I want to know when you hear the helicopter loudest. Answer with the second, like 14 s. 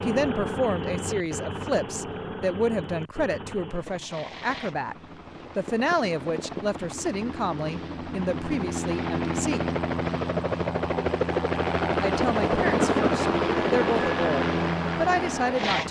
13 s.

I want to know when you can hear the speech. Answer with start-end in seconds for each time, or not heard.
0.0-5.0, 5.5-9.6, 11.9-15.8.